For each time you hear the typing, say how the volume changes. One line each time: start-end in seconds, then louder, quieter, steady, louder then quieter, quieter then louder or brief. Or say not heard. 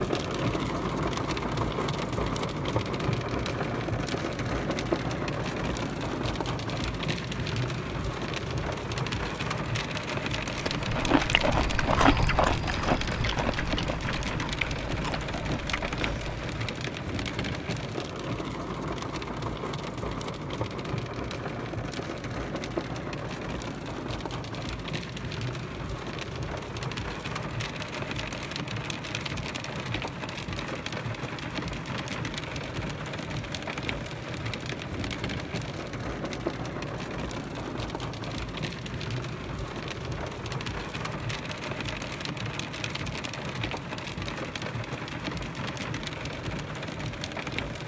not heard.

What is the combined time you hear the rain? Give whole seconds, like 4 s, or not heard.
48 s.